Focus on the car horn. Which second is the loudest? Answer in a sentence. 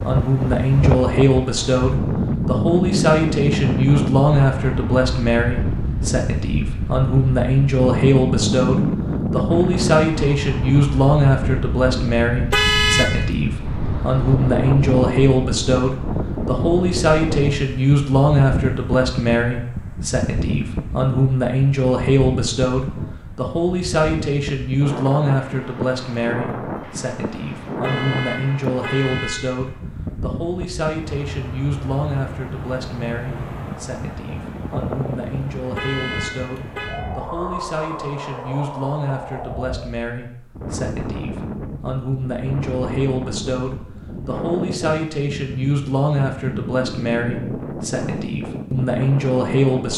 The loudest moment of the car horn is at 13 seconds.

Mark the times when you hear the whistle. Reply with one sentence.
The whistle can't be heard in this clip.